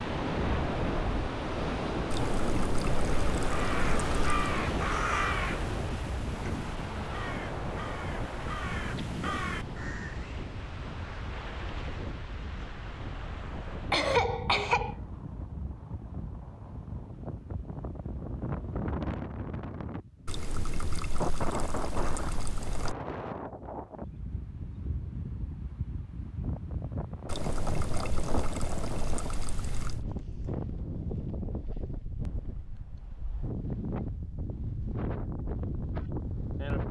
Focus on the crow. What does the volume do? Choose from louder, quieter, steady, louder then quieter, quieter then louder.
quieter then louder.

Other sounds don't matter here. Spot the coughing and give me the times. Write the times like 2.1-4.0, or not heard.
13.9-14.9.